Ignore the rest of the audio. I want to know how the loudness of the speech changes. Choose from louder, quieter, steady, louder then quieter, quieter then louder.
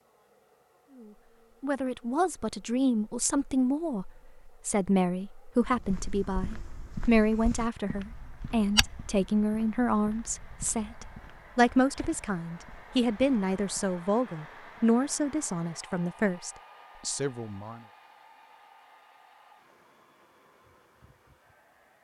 steady.